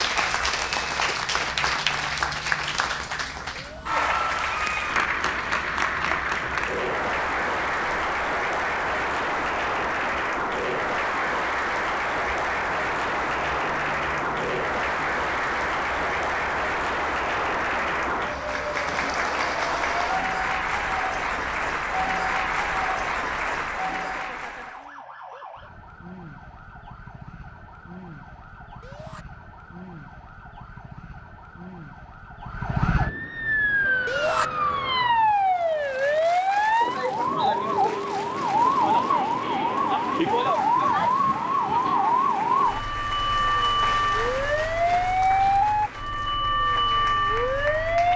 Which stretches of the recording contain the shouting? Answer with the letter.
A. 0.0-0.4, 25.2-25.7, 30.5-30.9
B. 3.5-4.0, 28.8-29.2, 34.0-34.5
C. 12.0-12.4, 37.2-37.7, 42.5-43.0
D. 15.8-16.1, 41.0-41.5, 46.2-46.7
B.